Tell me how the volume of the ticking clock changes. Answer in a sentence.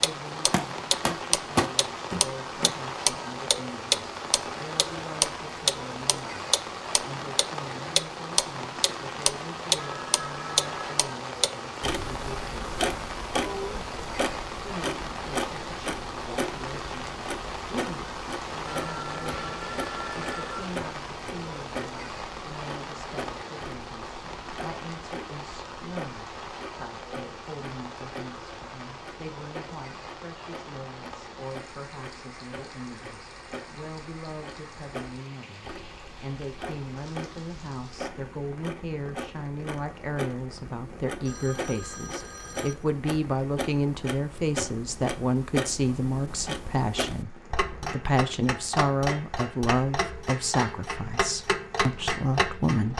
The loudness of the ticking clock goes down, then up.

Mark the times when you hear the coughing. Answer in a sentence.
You can't hear the coughing here.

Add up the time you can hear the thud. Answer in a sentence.
The thud can be heard for 3 seconds in total.